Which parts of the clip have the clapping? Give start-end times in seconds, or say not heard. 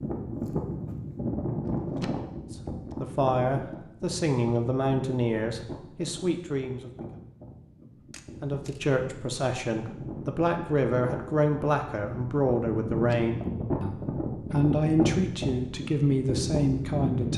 not heard.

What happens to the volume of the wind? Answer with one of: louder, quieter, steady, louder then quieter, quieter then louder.
quieter then louder.